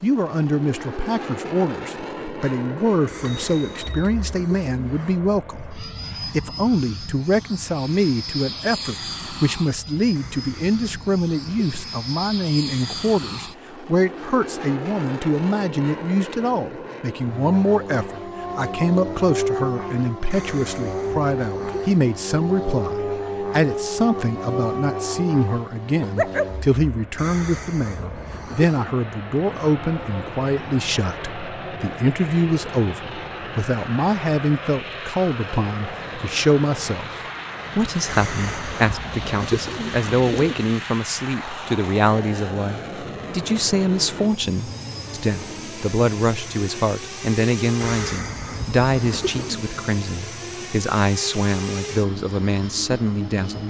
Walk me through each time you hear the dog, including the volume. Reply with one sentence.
The dog can be heard from 18.1 to 26.5 s, at a steady volume.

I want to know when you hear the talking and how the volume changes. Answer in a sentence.
You can hear the talking from 0.0 to 37.1 s, at a steady volume; and from 37.8 to 53.6 s, at a steady volume.